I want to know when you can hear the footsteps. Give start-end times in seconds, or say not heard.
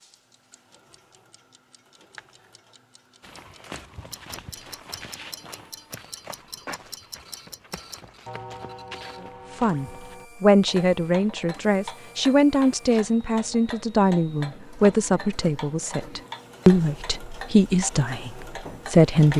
3.2-10.2.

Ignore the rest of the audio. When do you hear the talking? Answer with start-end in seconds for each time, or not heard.
9.6-19.3.